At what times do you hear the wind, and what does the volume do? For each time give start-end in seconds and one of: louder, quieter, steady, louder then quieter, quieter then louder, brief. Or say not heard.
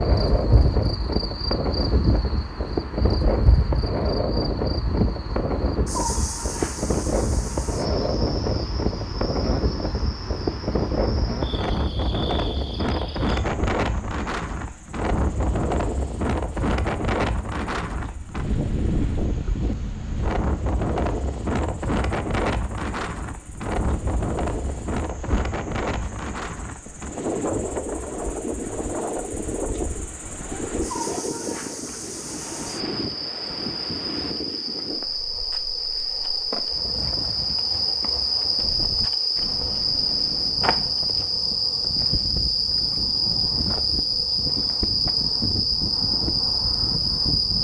0.0-47.6 quieter.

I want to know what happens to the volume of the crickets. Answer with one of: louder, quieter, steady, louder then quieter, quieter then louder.
quieter then louder.